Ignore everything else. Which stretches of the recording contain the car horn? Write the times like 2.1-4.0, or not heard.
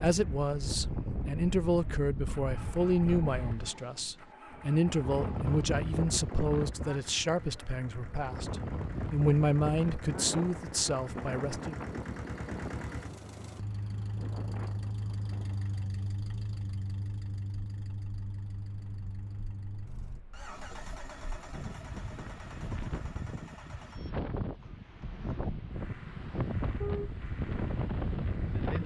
26.8-27.2.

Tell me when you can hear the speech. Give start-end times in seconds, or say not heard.
0.0-11.8.